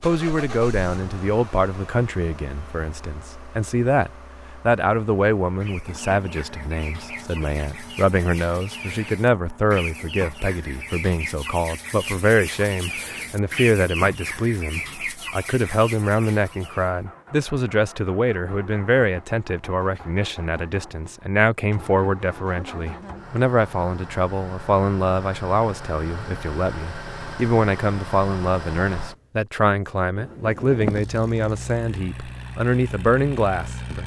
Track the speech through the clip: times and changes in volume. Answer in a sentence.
You can hear the speech from 0.0 to 34.0 s, at a steady volume.